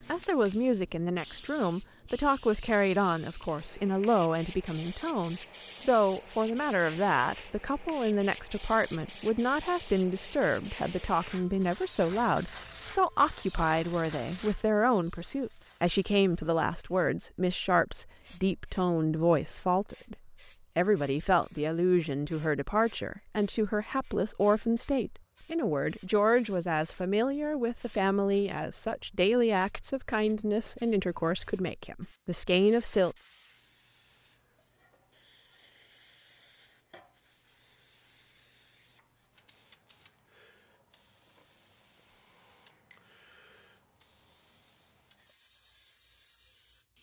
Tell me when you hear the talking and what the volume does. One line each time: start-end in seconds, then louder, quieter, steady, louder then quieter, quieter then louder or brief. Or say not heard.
0.1-33.1 steady.